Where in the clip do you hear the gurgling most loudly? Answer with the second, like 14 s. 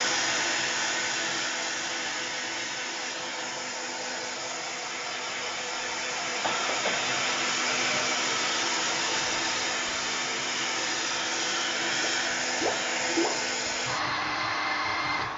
13 s.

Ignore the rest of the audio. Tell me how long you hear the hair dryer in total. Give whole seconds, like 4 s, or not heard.
15 s.